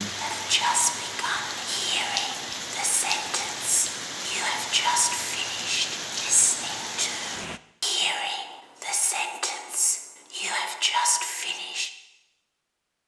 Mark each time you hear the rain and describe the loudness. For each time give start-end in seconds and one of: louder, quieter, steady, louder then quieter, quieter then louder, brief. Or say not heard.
0.0-7.6 steady.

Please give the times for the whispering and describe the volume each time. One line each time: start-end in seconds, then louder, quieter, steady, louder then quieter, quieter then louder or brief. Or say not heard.
0.1-11.9 steady.